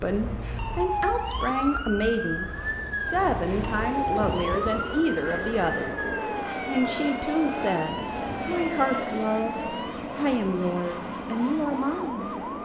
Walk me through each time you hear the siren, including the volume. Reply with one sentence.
You can hear the siren from 0.0 to 12.6 s, getting quieter.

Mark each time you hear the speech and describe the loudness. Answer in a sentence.
You can hear the speech from 0.0 to 12.3 s, at a steady volume.